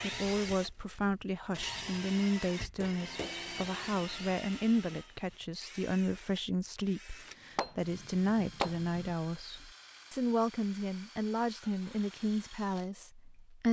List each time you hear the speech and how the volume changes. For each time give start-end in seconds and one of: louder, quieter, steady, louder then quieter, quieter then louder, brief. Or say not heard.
0.0-13.6 steady.